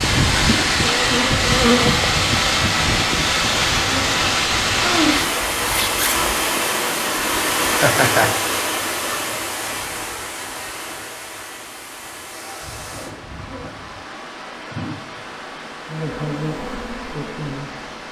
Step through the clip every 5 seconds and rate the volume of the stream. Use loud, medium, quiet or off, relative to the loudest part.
loud, loud, quiet, quiet.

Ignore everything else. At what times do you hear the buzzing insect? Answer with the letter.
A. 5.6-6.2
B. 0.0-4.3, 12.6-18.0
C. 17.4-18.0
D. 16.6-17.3
B.